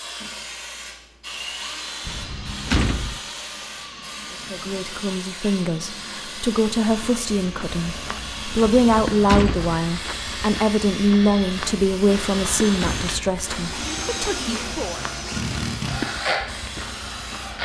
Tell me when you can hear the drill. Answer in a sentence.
You can hear the drill from 0.1 to 17.6 s.